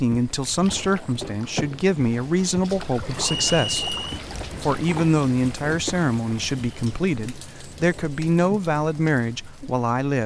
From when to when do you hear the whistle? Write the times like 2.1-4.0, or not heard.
3.2-4.2.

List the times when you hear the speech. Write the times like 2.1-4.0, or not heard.
0.0-10.2.